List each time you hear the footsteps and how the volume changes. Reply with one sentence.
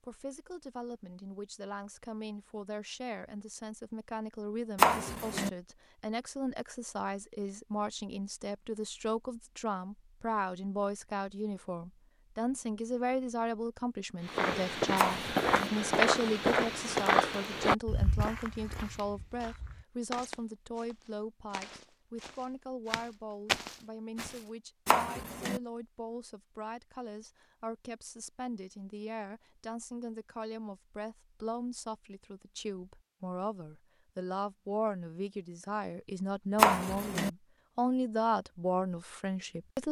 You can hear the footsteps from 14.2 to 24.4 s, getting quieter then louder.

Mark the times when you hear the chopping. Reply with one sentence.
The chopping can be heard from 4.8 to 5.5 s, from 14.9 to 15.7 s, from 24.9 to 25.6 s and from 36.5 to 37.3 s.